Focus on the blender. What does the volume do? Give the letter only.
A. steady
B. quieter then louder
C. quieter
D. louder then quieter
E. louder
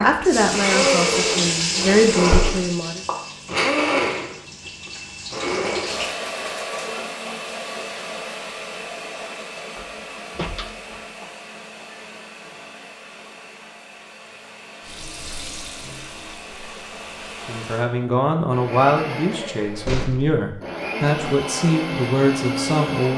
B.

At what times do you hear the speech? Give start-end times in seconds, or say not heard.
0.0-3.0, 17.4-23.1.